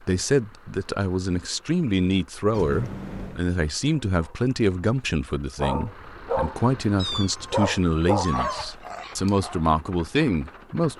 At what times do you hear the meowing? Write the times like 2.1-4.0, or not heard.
2.5-3.5, 7.0-8.7.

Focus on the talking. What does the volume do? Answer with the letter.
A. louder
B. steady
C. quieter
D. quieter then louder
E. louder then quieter
B.